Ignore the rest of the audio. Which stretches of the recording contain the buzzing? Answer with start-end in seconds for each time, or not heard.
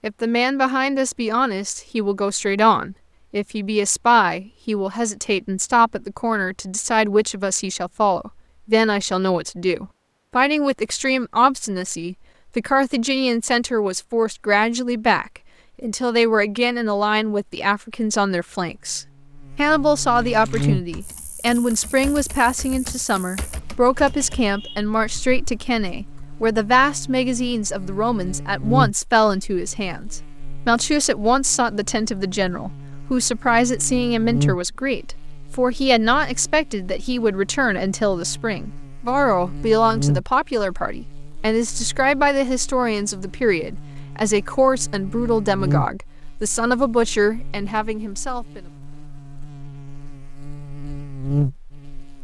18.6-52.1.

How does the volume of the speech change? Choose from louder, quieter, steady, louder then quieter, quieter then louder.
steady.